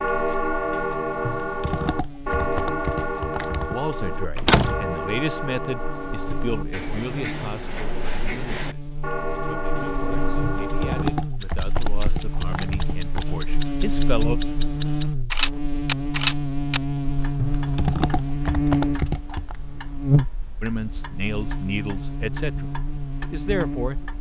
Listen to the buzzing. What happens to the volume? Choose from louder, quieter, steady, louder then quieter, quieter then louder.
louder.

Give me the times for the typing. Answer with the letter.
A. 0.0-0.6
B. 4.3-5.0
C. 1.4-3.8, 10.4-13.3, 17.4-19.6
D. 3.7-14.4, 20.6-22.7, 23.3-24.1
C.